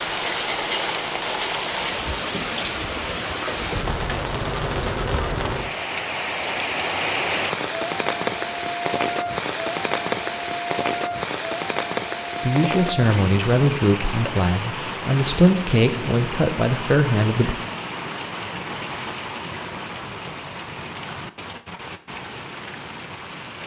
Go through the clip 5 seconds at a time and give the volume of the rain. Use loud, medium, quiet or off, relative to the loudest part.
loud, loud, loud, medium, medium.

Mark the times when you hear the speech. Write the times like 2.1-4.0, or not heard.
12.4-17.6.